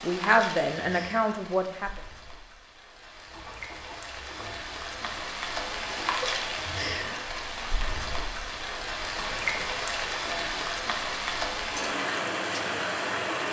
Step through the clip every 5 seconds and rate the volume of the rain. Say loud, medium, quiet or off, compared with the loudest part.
medium, loud, loud.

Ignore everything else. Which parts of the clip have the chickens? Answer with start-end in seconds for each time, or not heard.
3.2-5.2.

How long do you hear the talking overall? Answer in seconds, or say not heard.
2 s.